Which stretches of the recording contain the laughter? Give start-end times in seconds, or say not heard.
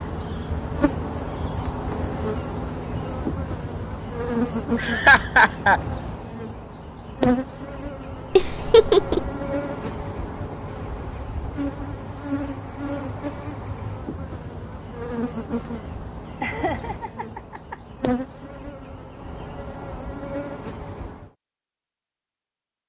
4.8-5.8, 8.3-9.2, 16.4-17.8.